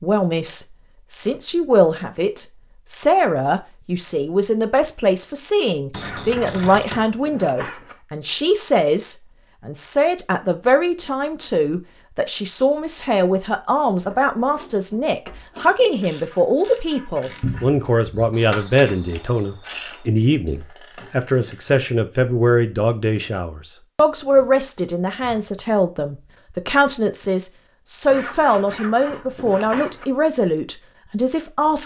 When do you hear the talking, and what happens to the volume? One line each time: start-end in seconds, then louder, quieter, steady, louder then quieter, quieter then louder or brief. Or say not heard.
0.0-31.8 steady.